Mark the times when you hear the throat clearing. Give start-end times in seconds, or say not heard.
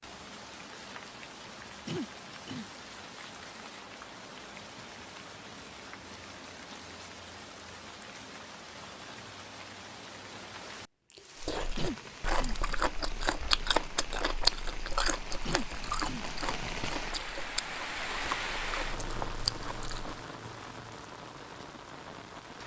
1.9-2.6, 11.8-12.6, 15.4-16.2.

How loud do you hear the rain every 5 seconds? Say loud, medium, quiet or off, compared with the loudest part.
medium, medium, medium, loud, medium.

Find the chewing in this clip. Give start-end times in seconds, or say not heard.
11.4-20.2.